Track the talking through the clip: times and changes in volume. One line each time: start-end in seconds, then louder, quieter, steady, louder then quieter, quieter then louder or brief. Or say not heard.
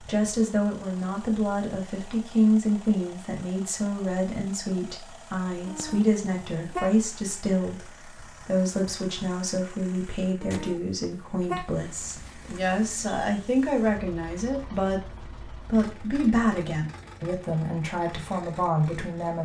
0.1-19.4 steady.